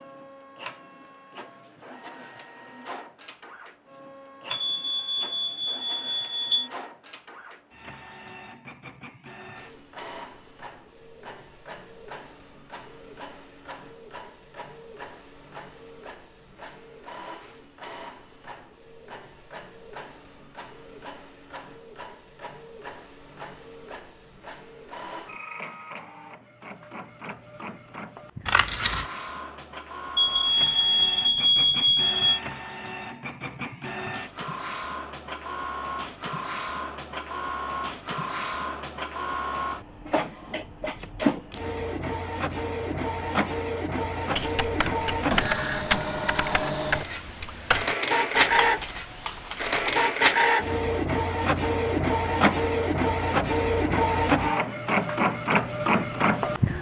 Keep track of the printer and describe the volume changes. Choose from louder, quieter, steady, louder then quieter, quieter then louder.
louder.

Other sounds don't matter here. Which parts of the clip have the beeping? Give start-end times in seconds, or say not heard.
4.5-6.7, 30.1-32.4.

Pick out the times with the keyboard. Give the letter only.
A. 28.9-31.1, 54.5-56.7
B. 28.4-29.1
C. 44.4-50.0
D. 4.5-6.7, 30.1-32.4
C.